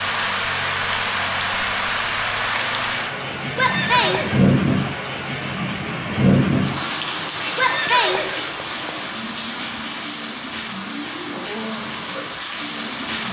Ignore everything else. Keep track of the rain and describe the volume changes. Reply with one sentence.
The loudness of the rain goes down.